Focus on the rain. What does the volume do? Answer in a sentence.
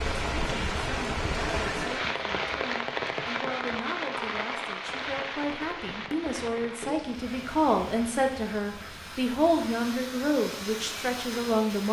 The loudness of the rain goes down.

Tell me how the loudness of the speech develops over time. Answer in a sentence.
The loudness of the speech goes up.